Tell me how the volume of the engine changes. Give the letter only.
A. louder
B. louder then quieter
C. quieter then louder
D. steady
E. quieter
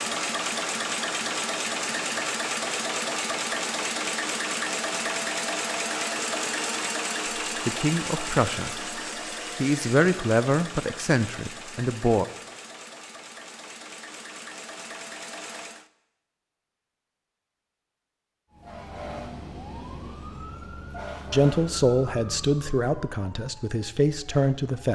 E.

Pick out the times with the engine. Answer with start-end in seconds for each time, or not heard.
0.0-15.9.